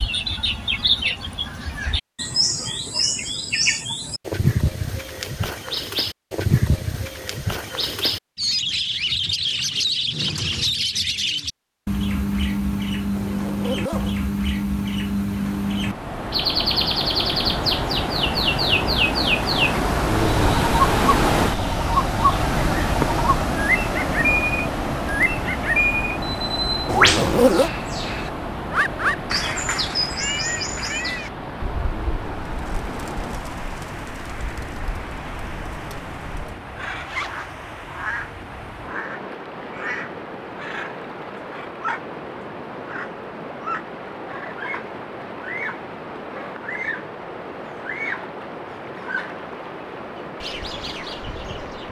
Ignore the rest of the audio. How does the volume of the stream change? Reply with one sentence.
The volume of the stream goes down.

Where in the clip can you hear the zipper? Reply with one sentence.
The zipper can be heard from 13.2 to 14.2 s, from 26.9 to 27.7 s and from 37.0 to 37.5 s.